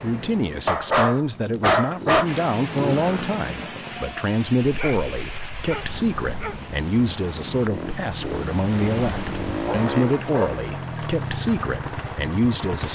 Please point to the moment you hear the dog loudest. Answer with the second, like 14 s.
2 s.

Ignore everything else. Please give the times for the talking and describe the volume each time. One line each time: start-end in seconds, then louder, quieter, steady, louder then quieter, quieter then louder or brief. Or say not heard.
0.0-12.8 steady.